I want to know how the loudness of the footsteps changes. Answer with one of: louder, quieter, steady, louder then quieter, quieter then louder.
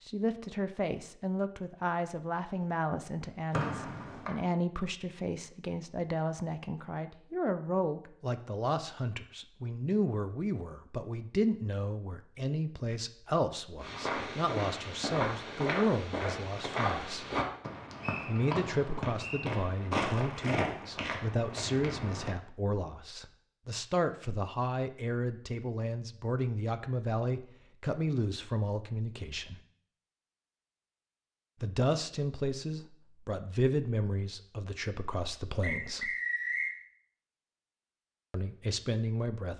steady.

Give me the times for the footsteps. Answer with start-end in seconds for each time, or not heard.
13.8-22.4.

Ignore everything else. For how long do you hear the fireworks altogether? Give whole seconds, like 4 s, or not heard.
not heard.